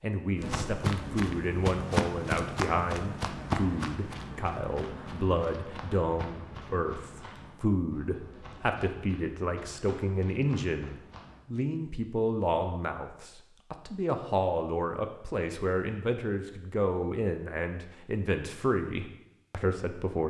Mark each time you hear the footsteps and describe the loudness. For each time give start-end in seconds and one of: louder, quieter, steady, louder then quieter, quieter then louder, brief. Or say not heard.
0.3-11.4 quieter.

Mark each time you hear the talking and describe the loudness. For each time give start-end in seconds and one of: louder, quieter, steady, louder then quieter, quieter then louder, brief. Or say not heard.
0.0-20.2 steady.